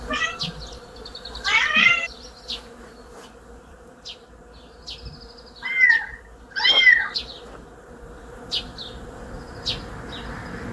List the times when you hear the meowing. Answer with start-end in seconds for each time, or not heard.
0.1-0.6, 1.4-2.1, 5.6-7.2.